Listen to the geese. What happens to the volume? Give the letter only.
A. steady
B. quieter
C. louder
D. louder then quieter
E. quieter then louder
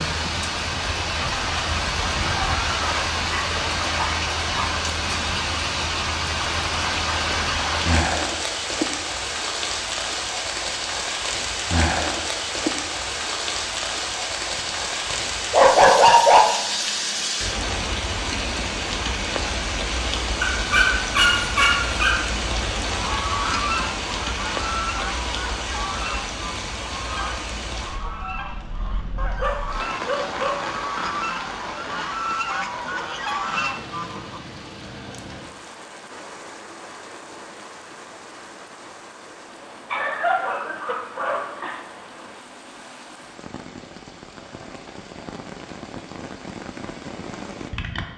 E.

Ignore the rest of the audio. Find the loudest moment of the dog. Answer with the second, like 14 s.
16 s.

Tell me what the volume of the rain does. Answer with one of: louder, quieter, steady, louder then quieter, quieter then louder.
quieter.